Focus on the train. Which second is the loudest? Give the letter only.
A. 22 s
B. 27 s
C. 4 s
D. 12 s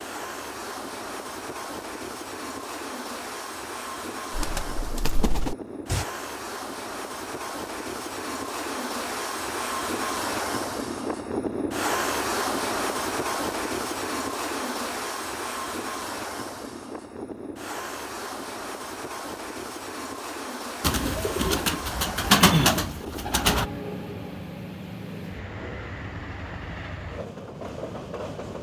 D.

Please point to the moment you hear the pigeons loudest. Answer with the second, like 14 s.
22 s.